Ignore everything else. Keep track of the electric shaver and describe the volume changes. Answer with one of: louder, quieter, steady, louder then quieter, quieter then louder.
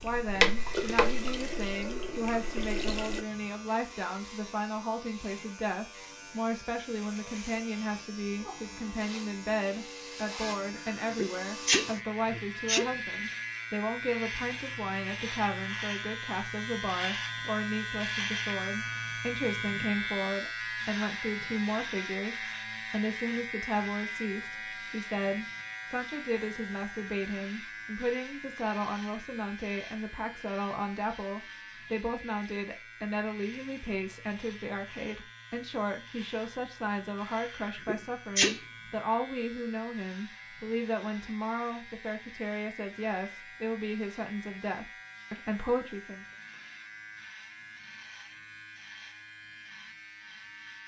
louder then quieter.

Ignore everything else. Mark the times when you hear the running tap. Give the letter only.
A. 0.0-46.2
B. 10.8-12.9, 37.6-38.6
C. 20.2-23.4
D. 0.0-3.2
D.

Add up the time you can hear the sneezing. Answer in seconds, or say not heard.
3 s.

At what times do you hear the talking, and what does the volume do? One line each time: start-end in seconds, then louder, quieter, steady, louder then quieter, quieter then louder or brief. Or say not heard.
0.0-46.2 steady.